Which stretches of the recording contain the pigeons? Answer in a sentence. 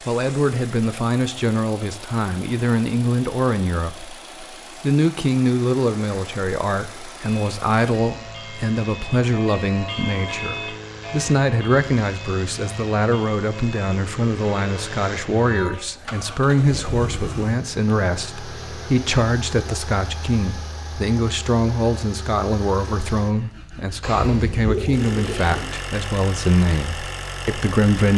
The pigeons can be heard from 24.0 to 25.6 s.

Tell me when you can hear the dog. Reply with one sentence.
The dog can't be heard in this clip.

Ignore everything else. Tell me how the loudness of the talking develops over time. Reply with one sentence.
The volume of the talking stays about the same.